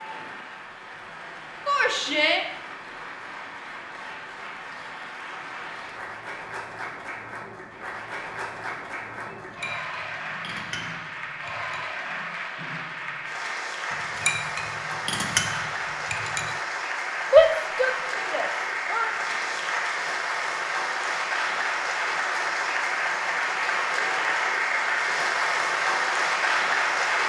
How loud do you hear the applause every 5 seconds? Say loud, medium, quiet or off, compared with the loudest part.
quiet, quiet, medium, medium, loud, loud.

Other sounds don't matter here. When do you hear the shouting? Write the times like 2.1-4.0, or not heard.
1.6-2.5, 17.3-19.1.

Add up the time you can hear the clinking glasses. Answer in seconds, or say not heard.
5 s.